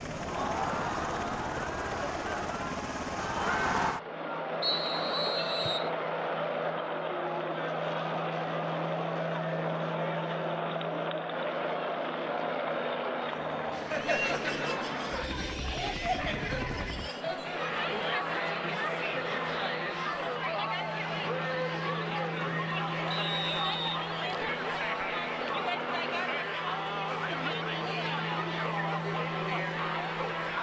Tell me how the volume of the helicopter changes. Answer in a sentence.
The loudness of the helicopter stays about the same.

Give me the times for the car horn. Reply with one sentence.
The car horn can't be heard in this clip.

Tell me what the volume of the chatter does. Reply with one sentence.
The volume of the chatter stays about the same.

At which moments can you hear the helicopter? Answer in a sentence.
The helicopter can be heard from 0.0 to 30.5 s.